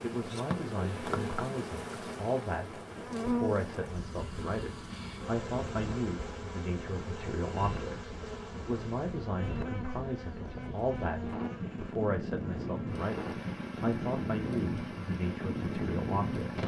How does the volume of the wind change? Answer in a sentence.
The volume of the wind goes up.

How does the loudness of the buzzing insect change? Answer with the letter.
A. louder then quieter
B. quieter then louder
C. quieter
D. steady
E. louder
C.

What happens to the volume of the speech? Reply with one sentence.
The volume of the speech stays about the same.